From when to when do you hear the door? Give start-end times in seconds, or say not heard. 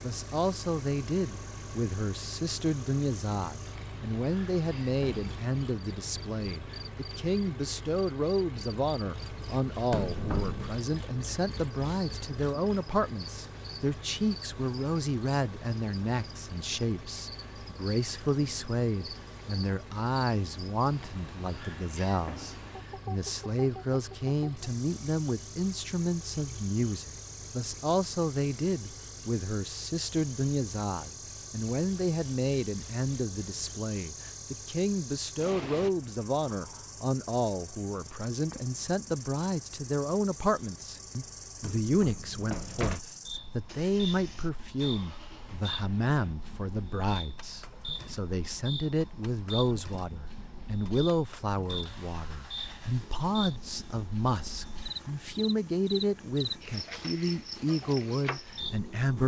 9.9-10.7, 41.6-43.0.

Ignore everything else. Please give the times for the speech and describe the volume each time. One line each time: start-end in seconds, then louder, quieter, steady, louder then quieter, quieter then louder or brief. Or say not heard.
0.0-59.2 steady.